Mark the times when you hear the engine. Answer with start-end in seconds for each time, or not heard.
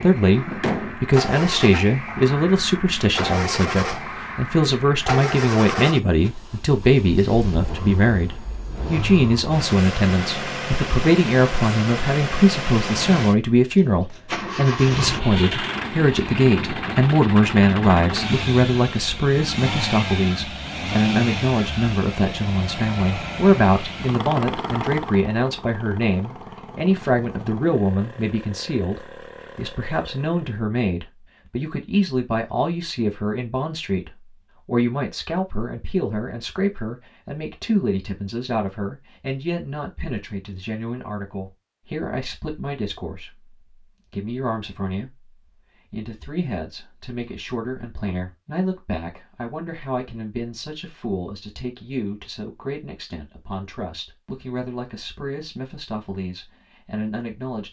0.0-30.6.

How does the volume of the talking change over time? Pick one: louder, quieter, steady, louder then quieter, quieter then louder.
quieter.